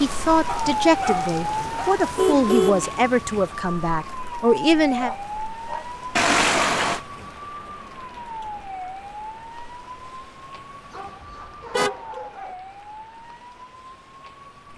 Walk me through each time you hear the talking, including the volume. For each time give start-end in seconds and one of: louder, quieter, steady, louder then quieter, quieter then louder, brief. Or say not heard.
0.0-5.1 steady.